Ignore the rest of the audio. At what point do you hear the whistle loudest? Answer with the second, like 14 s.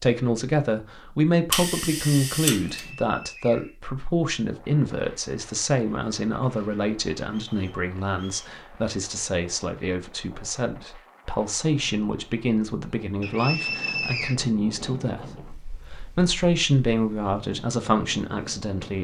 14 s.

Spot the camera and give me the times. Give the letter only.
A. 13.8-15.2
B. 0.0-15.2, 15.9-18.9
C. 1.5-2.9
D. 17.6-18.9
C.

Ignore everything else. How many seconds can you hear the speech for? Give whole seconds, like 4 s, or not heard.
18 s.